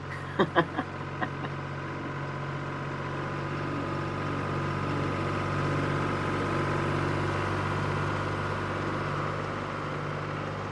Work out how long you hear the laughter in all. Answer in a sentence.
The laughter can be heard for 2 seconds in total.